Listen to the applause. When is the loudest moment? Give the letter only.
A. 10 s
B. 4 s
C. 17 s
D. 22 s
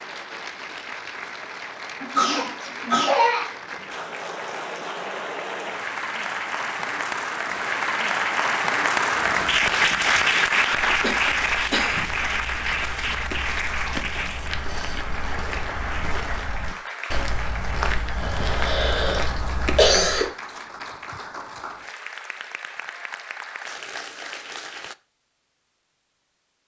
A.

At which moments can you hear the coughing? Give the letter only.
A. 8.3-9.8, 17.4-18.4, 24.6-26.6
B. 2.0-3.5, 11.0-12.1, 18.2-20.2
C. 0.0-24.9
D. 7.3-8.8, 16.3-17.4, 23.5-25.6
B.